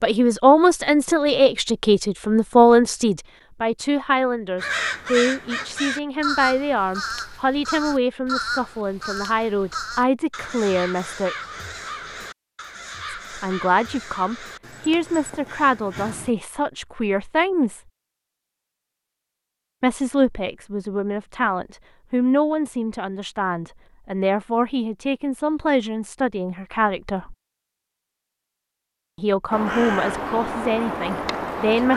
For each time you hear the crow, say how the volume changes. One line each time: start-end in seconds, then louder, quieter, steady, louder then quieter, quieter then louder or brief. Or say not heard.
4.5-16.4 quieter
29.5-31.9 brief.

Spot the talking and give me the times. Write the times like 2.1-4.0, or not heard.
0.0-11.3, 13.1-17.8, 19.8-27.4, 29.1-31.9.